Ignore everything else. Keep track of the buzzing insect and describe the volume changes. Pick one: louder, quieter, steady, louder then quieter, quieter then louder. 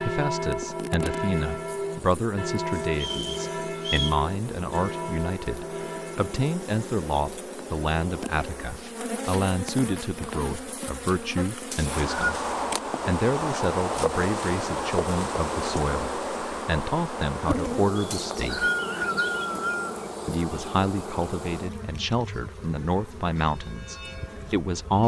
louder then quieter.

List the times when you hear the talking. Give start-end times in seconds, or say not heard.
0.0-12.4, 13.1-18.7, 20.2-25.0.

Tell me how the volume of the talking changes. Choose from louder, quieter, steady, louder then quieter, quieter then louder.
steady.